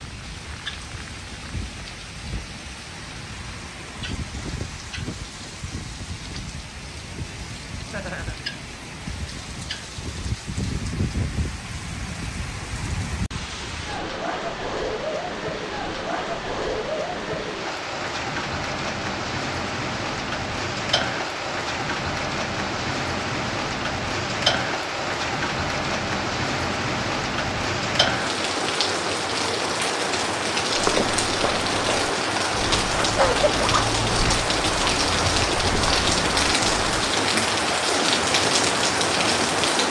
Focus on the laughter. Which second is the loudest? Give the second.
33 s.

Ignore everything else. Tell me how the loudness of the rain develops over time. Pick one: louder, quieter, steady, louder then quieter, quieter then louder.
louder.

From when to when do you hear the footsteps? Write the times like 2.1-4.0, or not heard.
30.8-37.1.